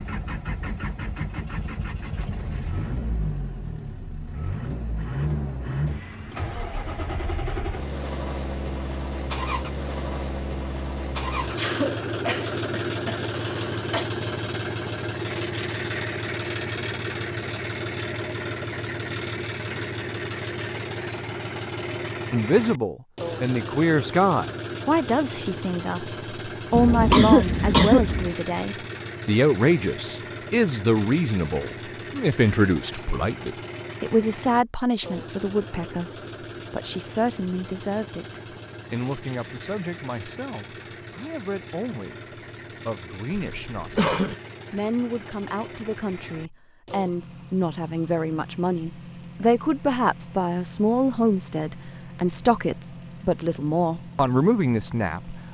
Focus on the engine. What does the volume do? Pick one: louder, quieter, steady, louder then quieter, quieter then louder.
quieter.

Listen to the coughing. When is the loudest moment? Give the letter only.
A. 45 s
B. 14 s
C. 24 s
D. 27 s
D.